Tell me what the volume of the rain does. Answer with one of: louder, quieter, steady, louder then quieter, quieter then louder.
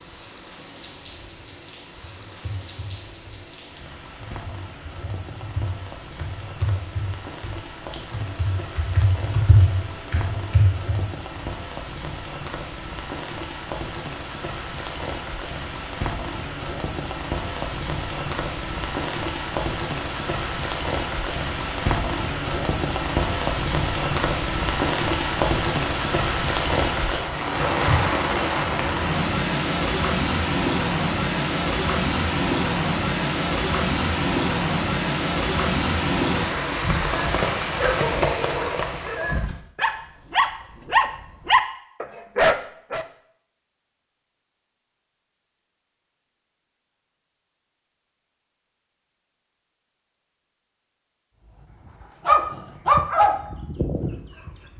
louder.